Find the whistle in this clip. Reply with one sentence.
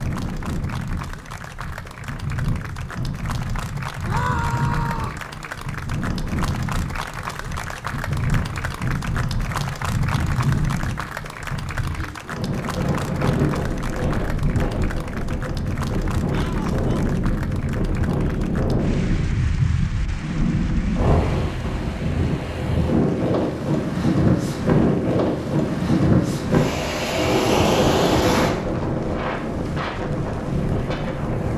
The whistle can't be heard in this clip.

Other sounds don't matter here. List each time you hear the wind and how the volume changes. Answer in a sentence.
The wind can be heard from 0.0 to 31.5 s, getting louder.